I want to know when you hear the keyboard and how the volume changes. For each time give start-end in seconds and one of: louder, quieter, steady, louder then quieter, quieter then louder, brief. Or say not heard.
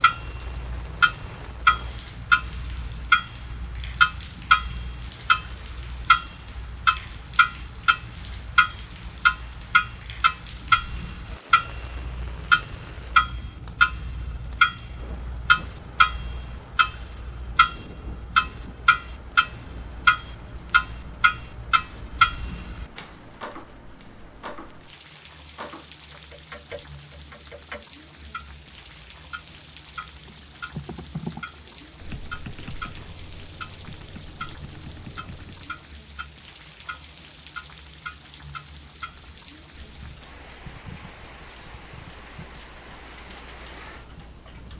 30.2-35.9 quieter.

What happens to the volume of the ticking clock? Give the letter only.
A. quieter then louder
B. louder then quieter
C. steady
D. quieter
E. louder
D.